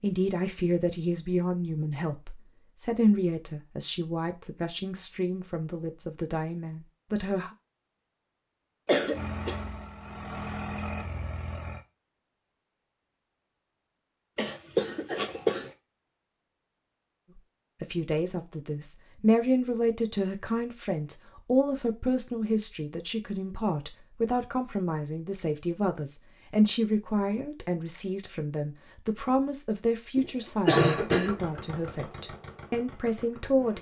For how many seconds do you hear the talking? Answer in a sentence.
The talking can be heard for 24 seconds in total.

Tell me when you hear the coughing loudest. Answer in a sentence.
The loudest moment of the coughing is at 31 seconds.